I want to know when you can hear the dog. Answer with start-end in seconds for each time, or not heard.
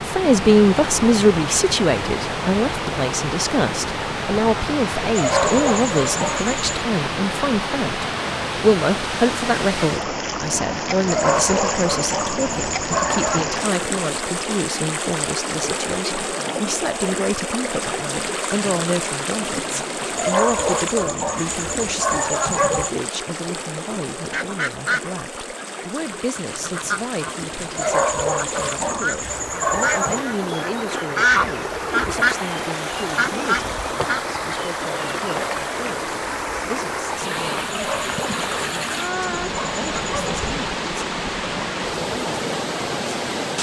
5.2-6.7, 11.1-13.6, 20.1-22.9, 27.8-30.2, 37.7-40.5.